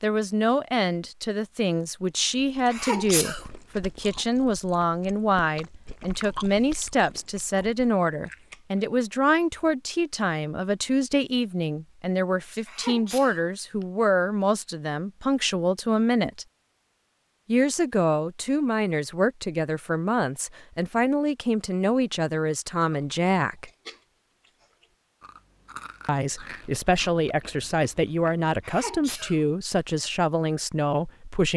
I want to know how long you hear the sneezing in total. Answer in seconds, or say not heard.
3 s.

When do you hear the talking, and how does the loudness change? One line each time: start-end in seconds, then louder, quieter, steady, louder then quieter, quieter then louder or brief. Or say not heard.
0.0-16.4 steady
17.4-23.7 steady
26.1-31.5 steady.